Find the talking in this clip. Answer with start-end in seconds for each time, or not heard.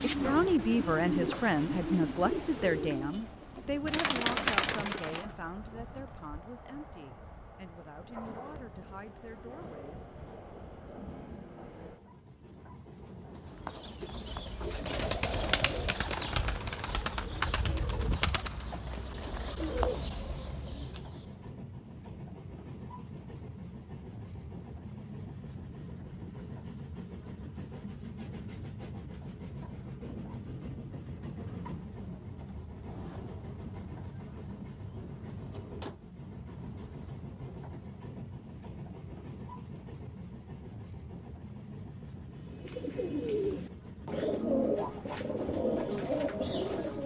0.1-10.1.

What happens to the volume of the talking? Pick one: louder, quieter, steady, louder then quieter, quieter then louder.
quieter.